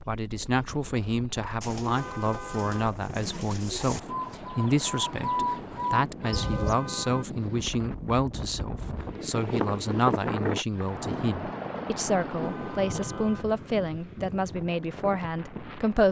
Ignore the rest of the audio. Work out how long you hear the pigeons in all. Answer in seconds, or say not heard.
5 s.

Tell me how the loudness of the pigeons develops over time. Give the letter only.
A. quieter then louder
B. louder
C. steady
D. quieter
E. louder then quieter
B.